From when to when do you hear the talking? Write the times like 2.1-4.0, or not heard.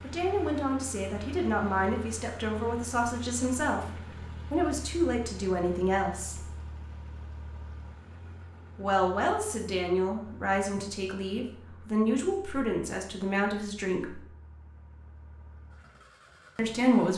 0.0-6.5, 8.8-14.2, 16.6-17.1.